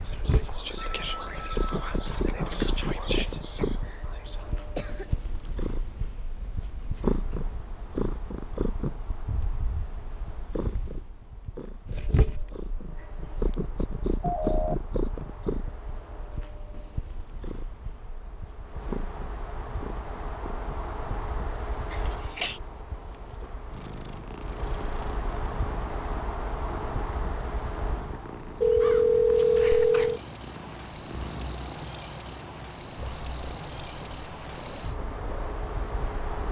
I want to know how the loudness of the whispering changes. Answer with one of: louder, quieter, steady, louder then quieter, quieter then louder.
steady.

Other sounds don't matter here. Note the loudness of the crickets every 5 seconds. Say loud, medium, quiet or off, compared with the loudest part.
quiet, quiet, quiet, quiet, quiet, medium, loud, medium.